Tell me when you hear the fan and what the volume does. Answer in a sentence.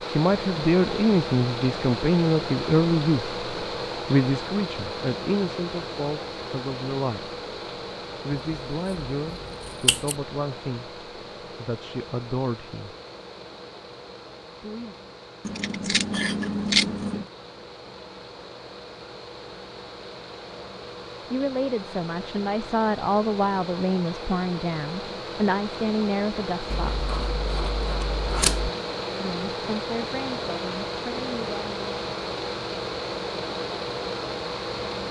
The fan can be heard from 0.0 to 35.0 s, getting quieter then louder.